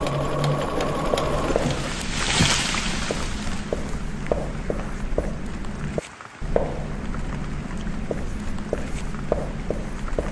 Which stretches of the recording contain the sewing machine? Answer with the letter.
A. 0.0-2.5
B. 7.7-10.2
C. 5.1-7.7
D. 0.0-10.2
A.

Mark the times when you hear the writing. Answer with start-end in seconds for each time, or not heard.
0.0-10.2.